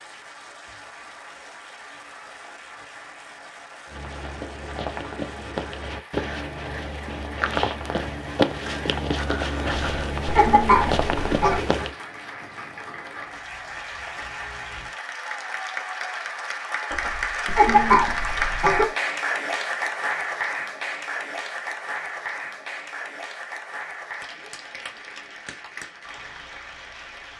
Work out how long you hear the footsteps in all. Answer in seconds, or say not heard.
8 s.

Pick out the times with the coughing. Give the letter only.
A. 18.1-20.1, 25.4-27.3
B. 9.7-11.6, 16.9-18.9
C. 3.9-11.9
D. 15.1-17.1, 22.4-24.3
B.